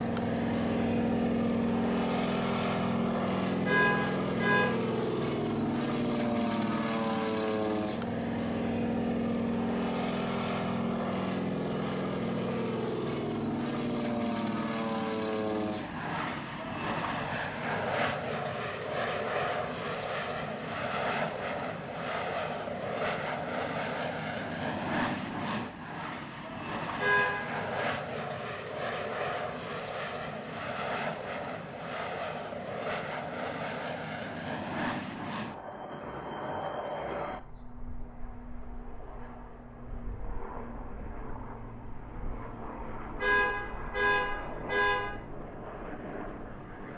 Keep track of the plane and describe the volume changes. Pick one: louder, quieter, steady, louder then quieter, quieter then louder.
quieter.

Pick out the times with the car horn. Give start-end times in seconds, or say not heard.
3.6-4.8, 26.9-27.9, 43.1-45.2.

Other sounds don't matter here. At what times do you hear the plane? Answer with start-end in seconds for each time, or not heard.
0.0-46.9.